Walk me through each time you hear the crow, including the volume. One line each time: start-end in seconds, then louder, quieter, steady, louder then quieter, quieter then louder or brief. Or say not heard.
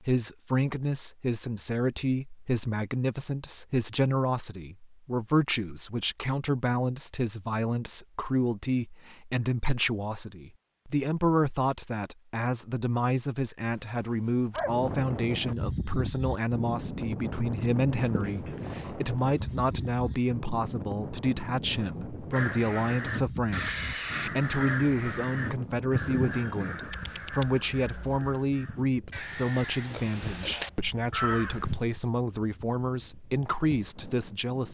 22.3-31.8 quieter then louder.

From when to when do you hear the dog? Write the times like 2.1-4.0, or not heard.
13.7-14.8, 17.6-19.6.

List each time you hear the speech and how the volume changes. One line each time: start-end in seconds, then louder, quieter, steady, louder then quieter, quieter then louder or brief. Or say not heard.
0.0-34.7 steady.